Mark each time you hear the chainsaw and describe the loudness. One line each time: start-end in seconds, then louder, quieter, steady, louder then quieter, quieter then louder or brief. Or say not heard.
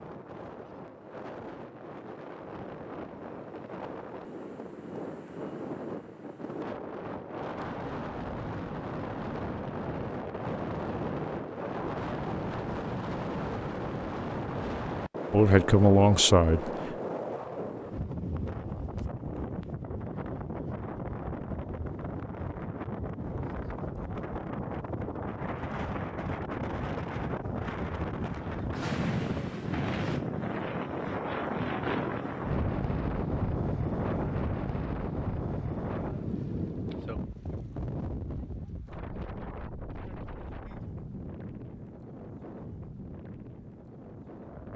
not heard.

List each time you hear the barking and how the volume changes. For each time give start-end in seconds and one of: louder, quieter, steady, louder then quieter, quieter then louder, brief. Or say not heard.
not heard.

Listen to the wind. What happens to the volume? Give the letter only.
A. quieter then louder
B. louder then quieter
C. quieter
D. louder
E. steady
B.